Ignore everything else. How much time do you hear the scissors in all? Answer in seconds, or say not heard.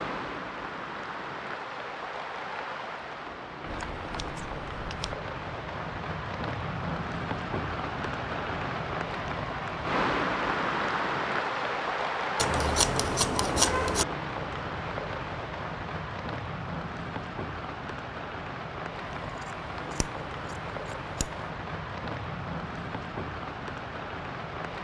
5 s.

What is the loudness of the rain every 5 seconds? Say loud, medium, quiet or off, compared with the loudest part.
medium, loud, loud, medium, medium.